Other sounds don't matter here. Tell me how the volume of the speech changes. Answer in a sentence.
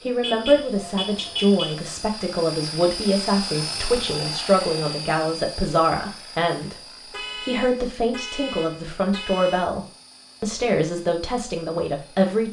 The loudness of the speech stays about the same.